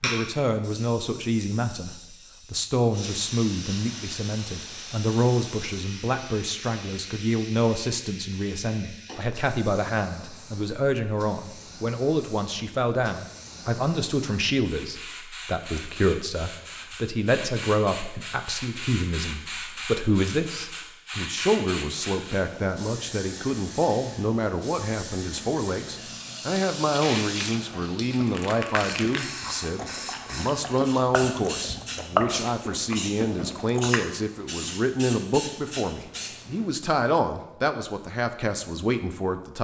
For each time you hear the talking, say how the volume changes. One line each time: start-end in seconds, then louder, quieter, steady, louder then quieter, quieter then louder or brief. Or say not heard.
0.0-39.5 steady.